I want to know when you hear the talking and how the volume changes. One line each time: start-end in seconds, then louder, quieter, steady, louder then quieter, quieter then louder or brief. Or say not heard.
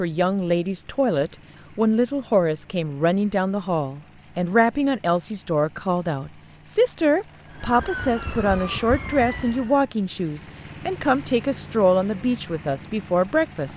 0.0-13.7 steady.